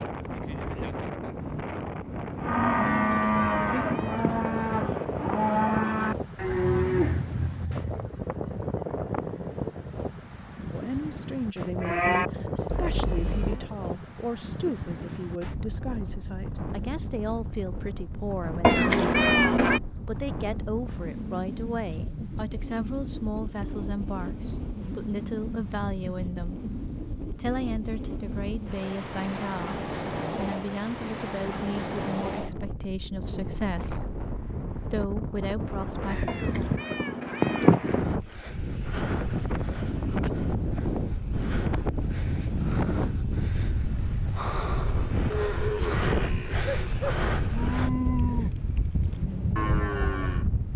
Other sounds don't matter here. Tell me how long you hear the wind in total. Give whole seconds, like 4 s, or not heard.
51 s.